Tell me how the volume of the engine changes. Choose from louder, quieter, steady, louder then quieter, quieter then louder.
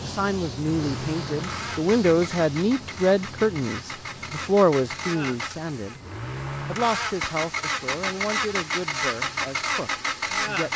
louder.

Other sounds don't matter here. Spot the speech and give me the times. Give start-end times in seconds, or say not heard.
0.0-6.0, 6.7-10.7.